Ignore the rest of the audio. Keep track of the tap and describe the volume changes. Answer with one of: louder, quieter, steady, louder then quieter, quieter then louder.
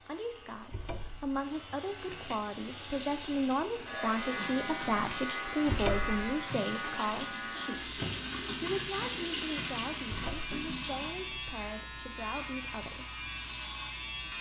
louder.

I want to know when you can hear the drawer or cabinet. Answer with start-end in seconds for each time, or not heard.
0.7-1.4, 5.7-6.3, 10.1-10.6.